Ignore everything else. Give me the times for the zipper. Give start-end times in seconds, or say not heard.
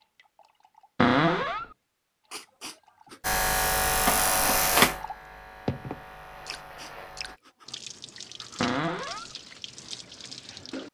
not heard.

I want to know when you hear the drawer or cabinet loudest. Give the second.
1 s.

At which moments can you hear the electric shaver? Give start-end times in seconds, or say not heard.
3.2-7.4.